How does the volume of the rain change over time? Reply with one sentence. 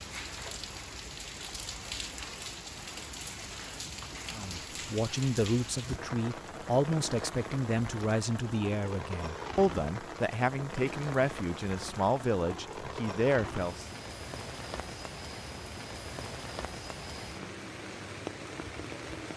The loudness of the rain stays about the same.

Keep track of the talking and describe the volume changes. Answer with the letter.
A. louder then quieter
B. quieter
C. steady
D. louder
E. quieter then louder
C.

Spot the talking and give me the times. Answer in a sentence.
You can hear the talking from 4.3 to 13.8 s.